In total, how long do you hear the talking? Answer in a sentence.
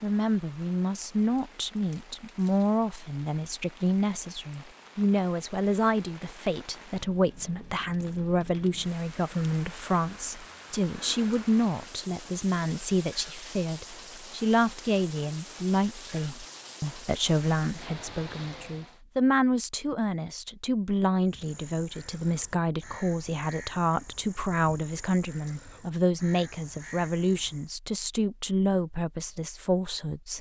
You can hear the talking for 30 seconds altogether.